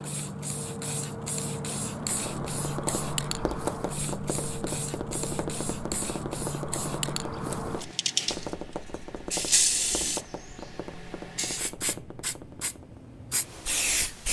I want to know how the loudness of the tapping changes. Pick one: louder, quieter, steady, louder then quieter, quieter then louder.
quieter.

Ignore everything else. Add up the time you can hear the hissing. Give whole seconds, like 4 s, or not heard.
14 s.